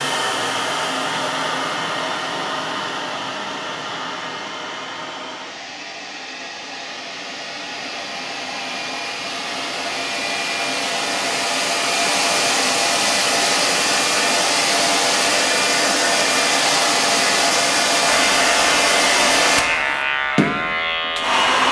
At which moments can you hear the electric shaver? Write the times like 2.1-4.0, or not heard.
18.1-21.4.